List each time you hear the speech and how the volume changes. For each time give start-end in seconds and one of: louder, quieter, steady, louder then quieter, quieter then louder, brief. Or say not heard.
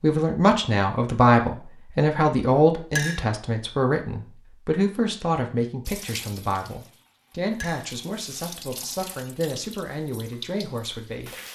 0.0-11.3 quieter.